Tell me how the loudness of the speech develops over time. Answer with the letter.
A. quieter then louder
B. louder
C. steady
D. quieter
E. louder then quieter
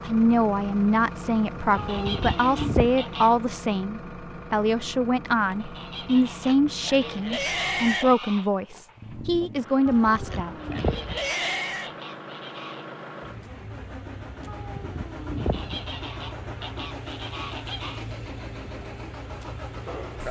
C.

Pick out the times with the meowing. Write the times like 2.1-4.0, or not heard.
1.8-3.0, 9.8-11.2, 14.4-15.8.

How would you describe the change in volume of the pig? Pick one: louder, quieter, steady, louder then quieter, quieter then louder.
quieter then louder.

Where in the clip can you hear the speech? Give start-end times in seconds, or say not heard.
0.0-10.6.